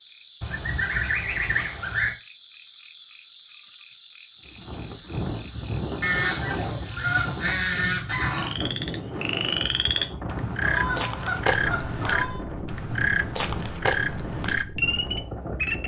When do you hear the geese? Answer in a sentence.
You can hear the geese from 0.4 to 2.1 s, from 6.0 to 8.6 s and from 10.6 to 12.4 s.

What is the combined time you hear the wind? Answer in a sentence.
You can hear the wind for 11 seconds altogether.